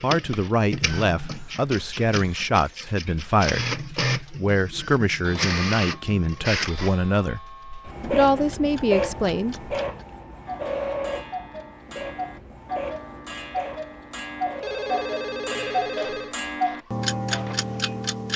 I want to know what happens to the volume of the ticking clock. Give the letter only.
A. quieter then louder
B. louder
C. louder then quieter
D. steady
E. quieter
B.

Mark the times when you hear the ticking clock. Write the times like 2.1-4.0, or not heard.
0.1-18.3.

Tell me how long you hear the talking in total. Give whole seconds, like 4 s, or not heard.
9 s.